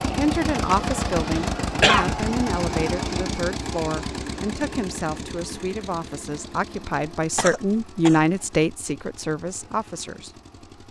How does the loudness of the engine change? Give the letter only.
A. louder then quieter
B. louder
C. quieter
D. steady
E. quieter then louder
C.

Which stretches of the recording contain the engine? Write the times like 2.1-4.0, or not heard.
0.0-10.8.